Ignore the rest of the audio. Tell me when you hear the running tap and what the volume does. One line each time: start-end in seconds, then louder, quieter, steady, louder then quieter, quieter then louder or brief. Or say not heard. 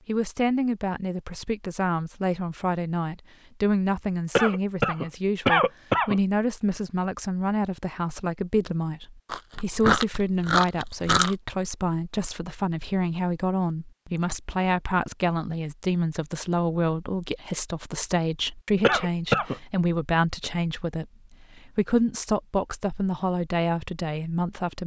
not heard.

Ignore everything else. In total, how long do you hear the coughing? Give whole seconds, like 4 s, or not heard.
3 s.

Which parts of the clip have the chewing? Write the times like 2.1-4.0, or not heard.
9.3-11.3.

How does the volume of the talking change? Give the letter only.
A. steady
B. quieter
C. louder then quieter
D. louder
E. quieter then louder
A.